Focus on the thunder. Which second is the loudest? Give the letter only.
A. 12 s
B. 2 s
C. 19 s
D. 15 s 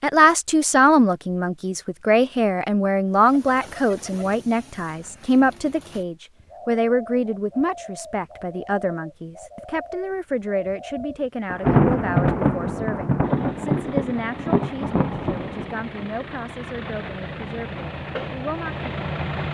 A.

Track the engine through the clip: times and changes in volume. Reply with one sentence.
You can hear the engine from 13.2 to 19.4 s, getting louder.